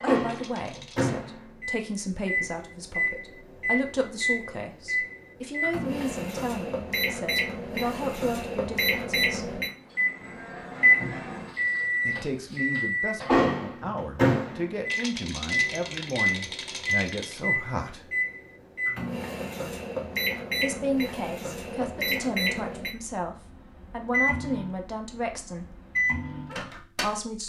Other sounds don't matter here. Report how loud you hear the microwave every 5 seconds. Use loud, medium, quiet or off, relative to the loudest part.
medium, medium, loud, medium, medium, medium.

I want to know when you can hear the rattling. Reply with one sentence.
The rattling can be heard from 0.2 to 1.1 s and from 14.8 to 17.4 s.